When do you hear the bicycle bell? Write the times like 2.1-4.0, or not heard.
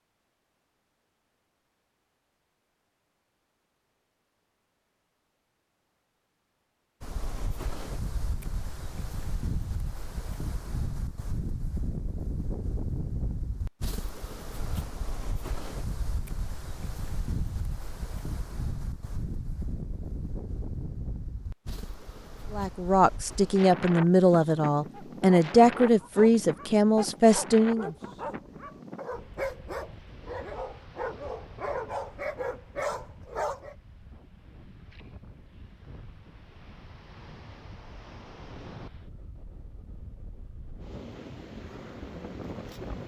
not heard.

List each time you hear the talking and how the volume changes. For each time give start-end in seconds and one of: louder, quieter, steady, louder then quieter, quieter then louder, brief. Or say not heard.
22.5-27.9 steady.